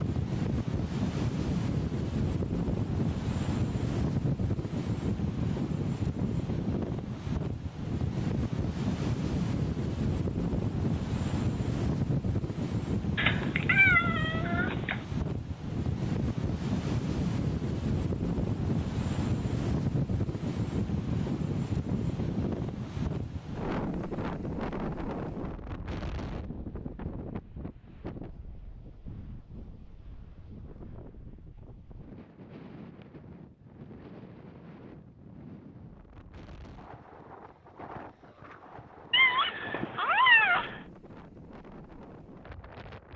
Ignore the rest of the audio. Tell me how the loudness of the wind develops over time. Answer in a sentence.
The loudness of the wind goes down.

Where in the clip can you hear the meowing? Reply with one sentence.
You can hear the meowing from 13.2 to 15.0 s and from 39.1 to 40.8 s.